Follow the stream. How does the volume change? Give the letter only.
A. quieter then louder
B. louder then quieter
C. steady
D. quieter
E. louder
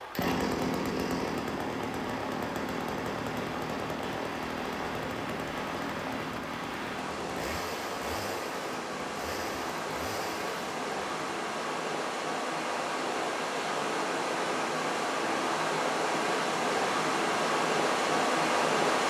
E.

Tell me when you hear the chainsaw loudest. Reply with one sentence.
The loudest moment of the chainsaw is at 1 second.